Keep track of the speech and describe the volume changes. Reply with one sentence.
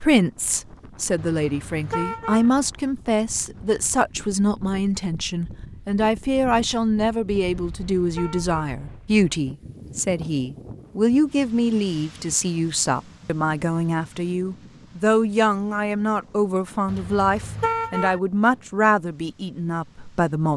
The loudness of the speech stays about the same.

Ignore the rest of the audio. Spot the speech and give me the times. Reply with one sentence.
The speech can be heard from 0.0 to 20.5 s.